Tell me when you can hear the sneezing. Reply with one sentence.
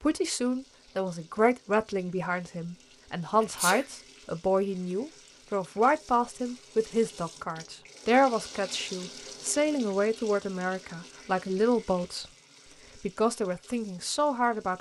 You can hear the sneezing from 3.4 to 3.9 s.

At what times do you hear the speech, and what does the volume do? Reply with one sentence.
The speech can be heard from 0.0 to 12.2 s, at a steady volume; and briefly from 12.9 to 14.7 s.